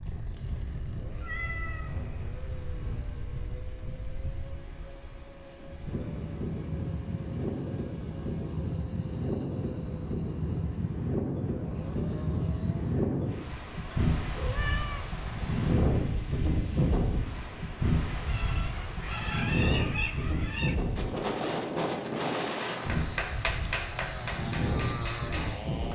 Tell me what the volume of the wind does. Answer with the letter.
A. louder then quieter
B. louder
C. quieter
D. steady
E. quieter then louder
B.